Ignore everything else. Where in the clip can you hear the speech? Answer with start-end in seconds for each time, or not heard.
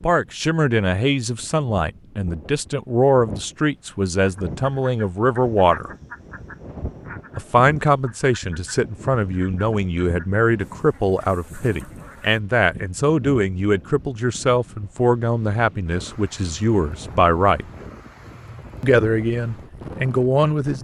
0.0-5.9, 7.3-17.6, 18.8-20.7.